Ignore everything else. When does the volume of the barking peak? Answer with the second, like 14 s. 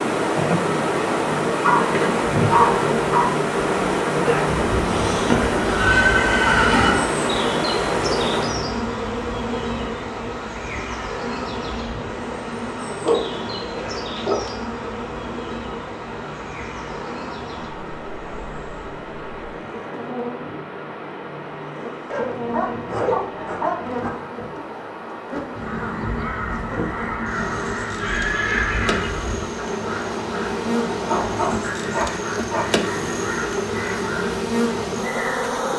3 s.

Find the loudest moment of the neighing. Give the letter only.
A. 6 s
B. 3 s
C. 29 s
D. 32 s
A.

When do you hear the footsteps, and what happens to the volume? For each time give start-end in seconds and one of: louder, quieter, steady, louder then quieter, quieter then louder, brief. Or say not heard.
not heard.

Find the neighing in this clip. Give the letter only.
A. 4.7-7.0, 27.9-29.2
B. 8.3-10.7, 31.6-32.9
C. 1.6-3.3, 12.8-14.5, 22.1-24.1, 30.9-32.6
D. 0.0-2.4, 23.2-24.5
A.